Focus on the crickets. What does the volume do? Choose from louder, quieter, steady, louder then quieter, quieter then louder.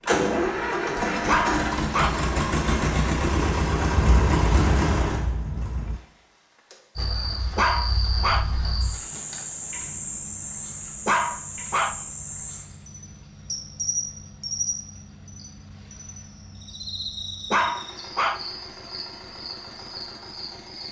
quieter.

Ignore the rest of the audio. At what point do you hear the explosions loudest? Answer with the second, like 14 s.
4 s.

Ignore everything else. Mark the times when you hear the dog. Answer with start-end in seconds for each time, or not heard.
1.2-2.1, 7.5-8.4, 11.1-11.9, 17.5-18.4.